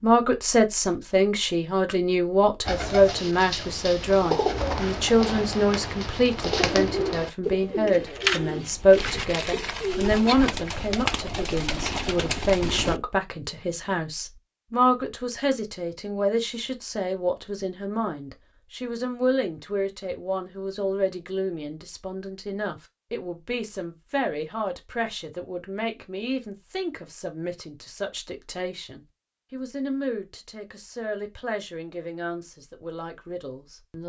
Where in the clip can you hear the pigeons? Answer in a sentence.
You can hear the pigeons from 2.6 to 13.0 s.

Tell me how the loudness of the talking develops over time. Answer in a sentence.
The volume of the talking goes down.